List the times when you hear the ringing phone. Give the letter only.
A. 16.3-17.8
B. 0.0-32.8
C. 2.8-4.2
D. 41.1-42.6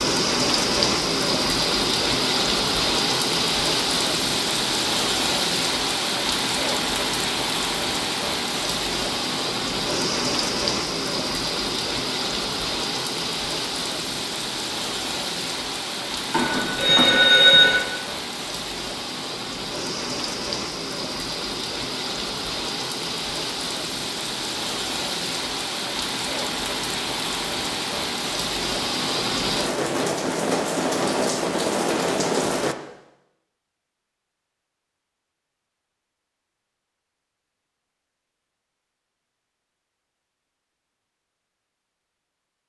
A.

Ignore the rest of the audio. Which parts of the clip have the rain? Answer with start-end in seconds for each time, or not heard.
0.0-32.8.